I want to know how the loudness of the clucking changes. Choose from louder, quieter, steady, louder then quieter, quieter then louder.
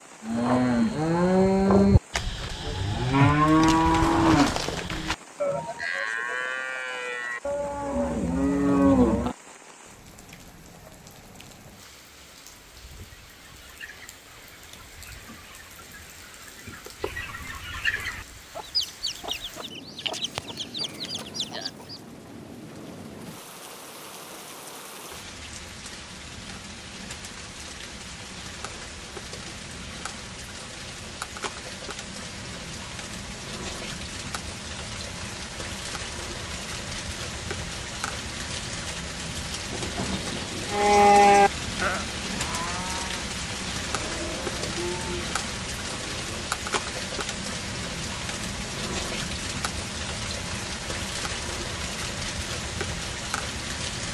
louder.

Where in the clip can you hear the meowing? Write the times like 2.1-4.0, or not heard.
not heard.